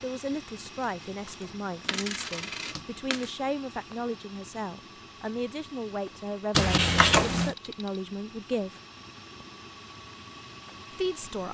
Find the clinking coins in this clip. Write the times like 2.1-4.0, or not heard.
0.8-3.3, 6.5-7.5.